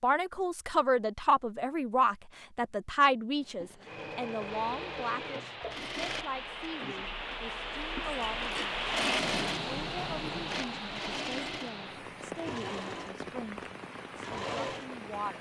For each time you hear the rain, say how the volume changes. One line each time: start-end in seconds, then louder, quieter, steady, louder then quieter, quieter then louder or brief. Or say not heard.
4.5-15.3 louder then quieter.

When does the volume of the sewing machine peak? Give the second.
9 s.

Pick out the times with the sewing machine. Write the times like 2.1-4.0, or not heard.
3.4-15.3.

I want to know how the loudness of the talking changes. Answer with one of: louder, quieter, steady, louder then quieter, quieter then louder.
quieter.